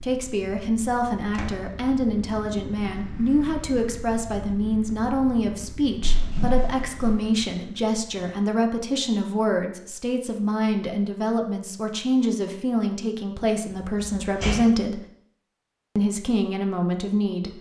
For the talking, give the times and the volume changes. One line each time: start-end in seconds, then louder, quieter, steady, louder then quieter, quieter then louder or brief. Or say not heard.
0.0-15.0 steady
15.9-17.5 brief.